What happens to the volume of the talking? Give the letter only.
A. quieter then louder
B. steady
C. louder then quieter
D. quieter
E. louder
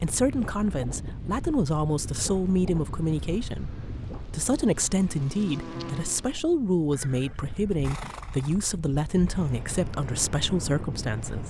B.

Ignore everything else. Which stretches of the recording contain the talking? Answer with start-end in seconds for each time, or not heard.
0.0-11.4.